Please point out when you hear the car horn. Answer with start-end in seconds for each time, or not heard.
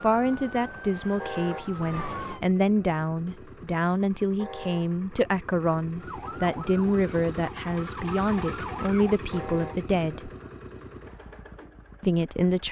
1.1-1.8, 4.3-5.0, 9.3-9.8.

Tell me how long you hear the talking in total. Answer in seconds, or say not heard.
11 s.